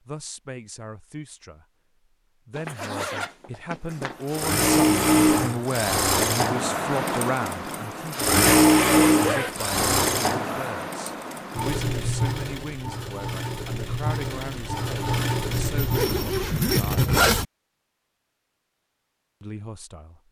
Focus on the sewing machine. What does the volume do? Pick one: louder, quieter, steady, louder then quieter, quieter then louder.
quieter.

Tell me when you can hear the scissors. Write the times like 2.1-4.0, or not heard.
not heard.